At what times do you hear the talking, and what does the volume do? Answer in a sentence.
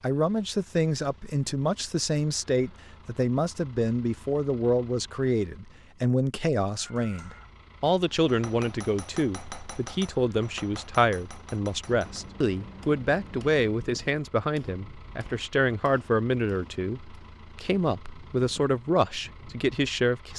You can hear the talking from 0.0 to 20.3 s, at a steady volume.